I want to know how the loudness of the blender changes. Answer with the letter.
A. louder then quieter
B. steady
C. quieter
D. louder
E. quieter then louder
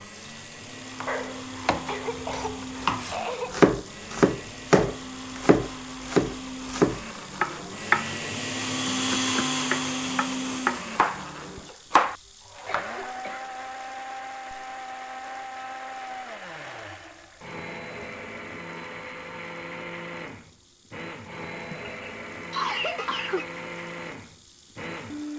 A.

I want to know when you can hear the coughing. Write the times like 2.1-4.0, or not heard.
1.1-3.7, 12.7-13.6, 21.7-23.5.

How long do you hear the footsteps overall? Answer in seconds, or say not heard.
not heard.